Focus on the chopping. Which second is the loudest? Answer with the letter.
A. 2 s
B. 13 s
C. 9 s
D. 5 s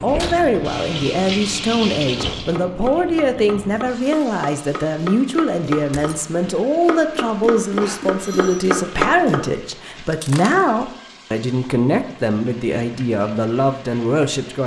C.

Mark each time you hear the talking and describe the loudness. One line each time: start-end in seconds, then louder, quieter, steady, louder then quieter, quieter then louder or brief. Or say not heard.
0.0-14.6 steady.